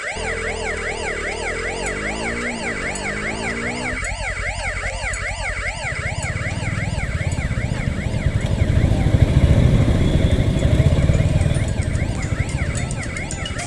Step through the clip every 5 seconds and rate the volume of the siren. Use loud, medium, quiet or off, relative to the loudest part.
loud, loud, medium.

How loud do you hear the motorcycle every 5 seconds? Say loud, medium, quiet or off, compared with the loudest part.
medium, loud, loud.